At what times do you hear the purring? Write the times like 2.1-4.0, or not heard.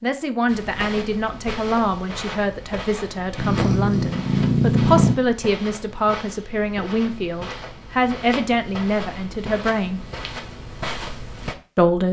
3.4-5.2.